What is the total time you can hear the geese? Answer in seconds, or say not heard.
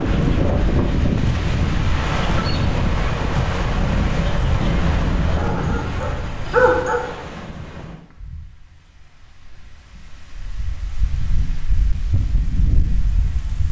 not heard.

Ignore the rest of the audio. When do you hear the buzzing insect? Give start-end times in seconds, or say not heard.
not heard.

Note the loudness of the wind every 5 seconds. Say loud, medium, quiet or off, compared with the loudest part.
loud, medium, medium.